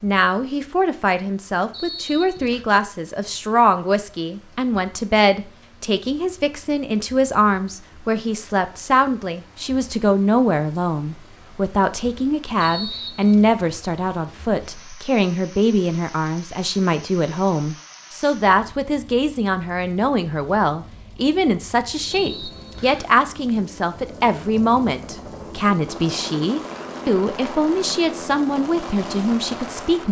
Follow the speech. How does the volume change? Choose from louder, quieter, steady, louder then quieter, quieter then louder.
steady.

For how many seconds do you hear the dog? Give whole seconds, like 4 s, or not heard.
not heard.